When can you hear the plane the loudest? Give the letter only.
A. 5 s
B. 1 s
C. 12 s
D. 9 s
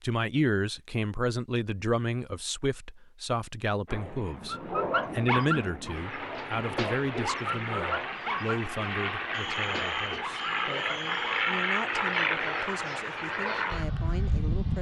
C.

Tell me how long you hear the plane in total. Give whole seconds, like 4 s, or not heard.
11 s.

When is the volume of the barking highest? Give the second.
5 s.